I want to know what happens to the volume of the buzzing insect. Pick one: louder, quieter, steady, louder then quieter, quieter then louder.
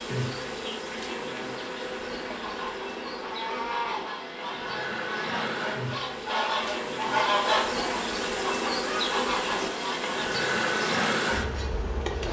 louder.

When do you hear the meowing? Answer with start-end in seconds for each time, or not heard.
3.1-4.0.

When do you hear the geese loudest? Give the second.
7 s.